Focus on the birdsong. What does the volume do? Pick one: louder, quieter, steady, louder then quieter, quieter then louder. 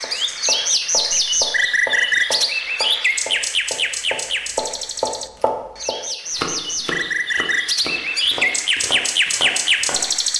quieter then louder.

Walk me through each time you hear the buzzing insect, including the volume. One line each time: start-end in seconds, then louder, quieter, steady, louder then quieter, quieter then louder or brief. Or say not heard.
not heard.